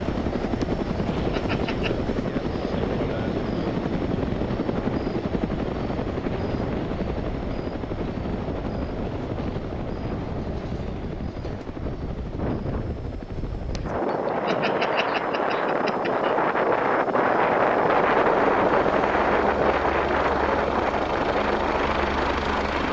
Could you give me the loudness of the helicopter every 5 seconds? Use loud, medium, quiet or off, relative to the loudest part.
loud, loud, medium, medium, loud.